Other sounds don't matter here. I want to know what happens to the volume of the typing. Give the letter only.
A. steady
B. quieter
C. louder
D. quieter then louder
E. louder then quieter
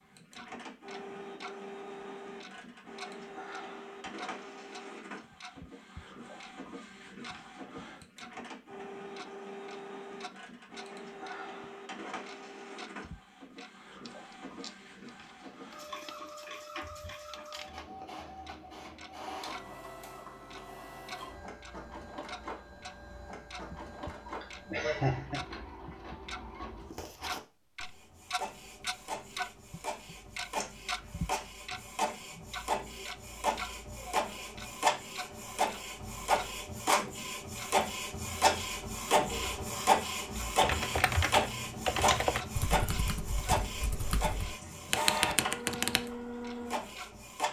D.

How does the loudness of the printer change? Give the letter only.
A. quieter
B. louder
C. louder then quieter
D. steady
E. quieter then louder
B.